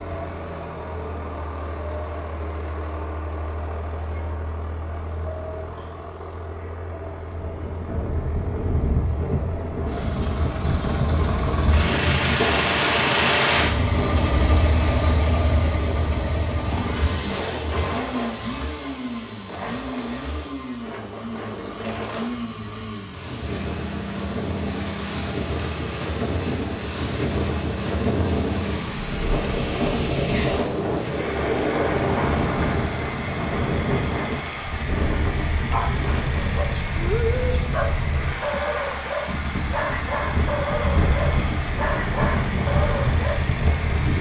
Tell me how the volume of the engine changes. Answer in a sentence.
The loudness of the engine goes up, then down.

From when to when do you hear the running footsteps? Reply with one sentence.
The running footsteps can't be heard in this clip.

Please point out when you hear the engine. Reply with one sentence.
You can hear the engine from 0.0 to 44.1 s.